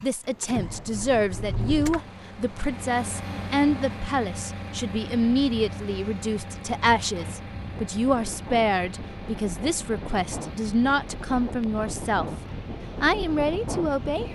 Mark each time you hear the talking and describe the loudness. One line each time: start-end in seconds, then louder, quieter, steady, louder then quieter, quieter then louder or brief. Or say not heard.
0.0-12.2 steady
13.0-14.3 brief.